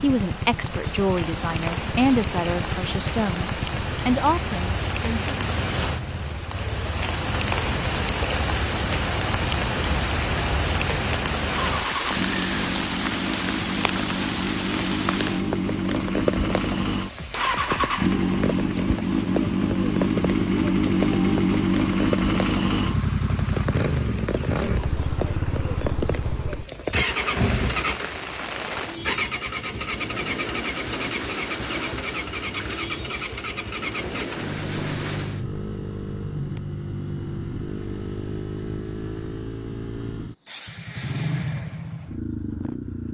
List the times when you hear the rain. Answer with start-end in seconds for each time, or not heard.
0.0-35.5.